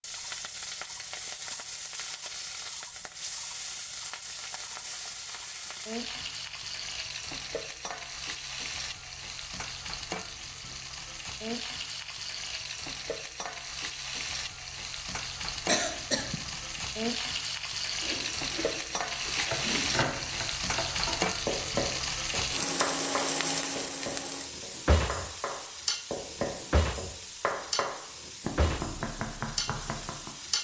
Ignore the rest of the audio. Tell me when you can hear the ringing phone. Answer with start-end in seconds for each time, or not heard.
not heard.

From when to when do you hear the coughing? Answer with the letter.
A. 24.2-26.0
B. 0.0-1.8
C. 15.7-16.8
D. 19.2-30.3
C.